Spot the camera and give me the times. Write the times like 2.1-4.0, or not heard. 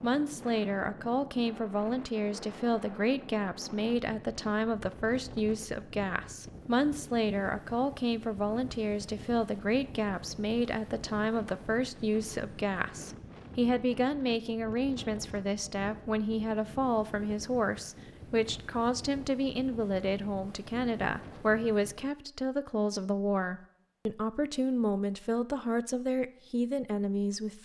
not heard.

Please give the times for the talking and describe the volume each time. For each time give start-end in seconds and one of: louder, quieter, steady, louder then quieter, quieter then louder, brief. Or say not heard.
0.0-27.6 steady.